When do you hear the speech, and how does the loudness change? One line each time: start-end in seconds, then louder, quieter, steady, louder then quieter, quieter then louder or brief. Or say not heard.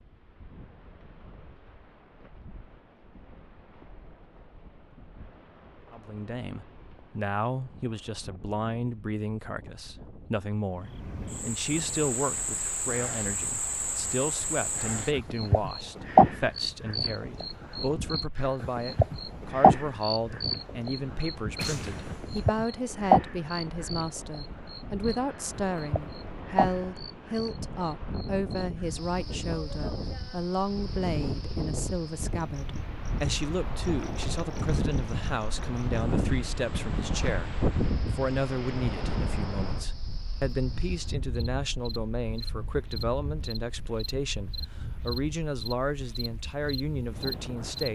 5.9-47.9 steady.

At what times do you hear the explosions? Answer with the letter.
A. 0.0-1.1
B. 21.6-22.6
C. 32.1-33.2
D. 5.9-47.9
B.